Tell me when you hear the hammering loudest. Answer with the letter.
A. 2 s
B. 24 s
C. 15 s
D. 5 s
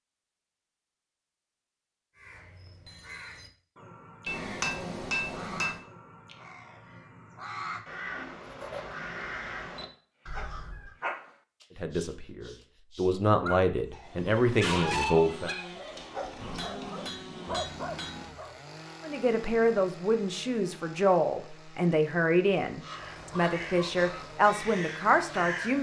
D.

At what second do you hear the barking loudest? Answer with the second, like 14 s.
15 s.